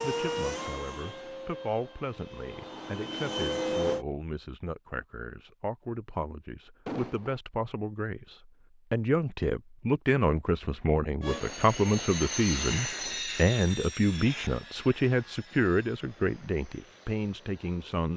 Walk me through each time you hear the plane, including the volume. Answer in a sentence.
You can hear the plane from 0.0 to 4.0 s, getting quieter then louder; and from 11.2 to 18.1 s, getting quieter.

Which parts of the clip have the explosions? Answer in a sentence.
The explosions can be heard from 6.8 to 7.4 s.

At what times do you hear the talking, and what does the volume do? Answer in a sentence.
The talking can be heard from 0.0 to 18.1 s, getting louder.